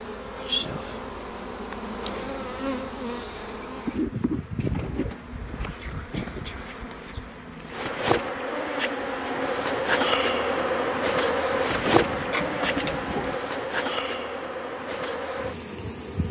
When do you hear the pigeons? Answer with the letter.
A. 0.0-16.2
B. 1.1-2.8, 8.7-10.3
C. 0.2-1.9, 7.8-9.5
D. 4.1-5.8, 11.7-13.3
D.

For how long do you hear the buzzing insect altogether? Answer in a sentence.
You can hear the buzzing insect for 16 seconds altogether.